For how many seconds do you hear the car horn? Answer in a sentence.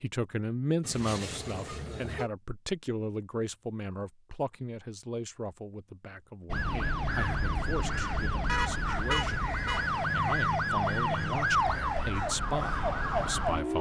The car horn can be heard for 3 seconds in total.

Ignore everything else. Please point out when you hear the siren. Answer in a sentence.
The siren can be heard from 6.5 to 13.7 s.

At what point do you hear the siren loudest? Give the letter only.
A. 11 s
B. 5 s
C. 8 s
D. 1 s
A.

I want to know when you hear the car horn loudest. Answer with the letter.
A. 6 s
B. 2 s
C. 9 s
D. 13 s
C.